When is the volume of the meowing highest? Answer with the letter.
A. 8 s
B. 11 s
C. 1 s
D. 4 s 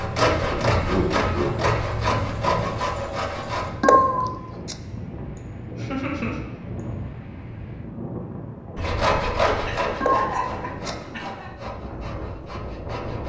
D.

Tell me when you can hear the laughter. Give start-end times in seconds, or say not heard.
0.8-1.6, 5.3-6.4, 9.6-11.5.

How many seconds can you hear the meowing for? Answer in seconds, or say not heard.
2 s.